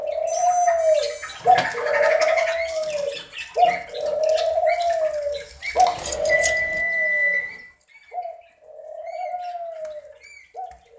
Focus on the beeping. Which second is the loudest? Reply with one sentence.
The loudest moment of the beeping is at 7 seconds.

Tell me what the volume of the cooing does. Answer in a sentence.
The loudness of the cooing goes down.